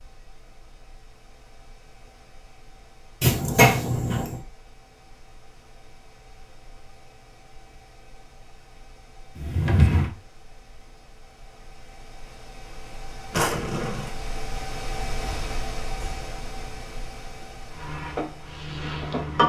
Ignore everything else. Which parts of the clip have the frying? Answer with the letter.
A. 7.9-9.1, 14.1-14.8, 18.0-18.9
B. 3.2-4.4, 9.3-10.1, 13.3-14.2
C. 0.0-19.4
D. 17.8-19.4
D.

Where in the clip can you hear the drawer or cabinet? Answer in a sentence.
The drawer or cabinet can be heard from 3.2 to 4.4 s, from 9.3 to 10.1 s and from 13.3 to 14.2 s.